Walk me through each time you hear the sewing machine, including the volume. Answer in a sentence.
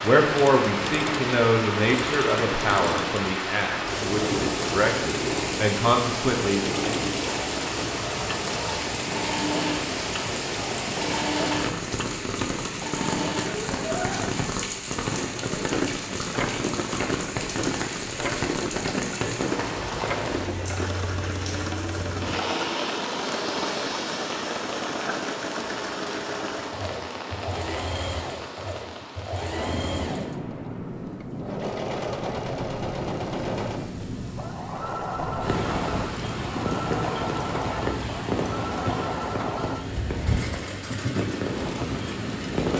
The sewing machine can be heard from 0.2 to 42.7 s, at a steady volume.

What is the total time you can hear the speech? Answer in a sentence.
The speech can be heard for 7 seconds in total.